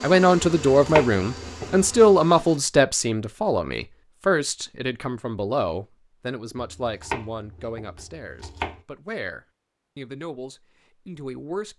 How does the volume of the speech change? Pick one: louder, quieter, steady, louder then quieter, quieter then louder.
quieter.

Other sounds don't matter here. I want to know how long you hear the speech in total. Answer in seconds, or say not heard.
12 s.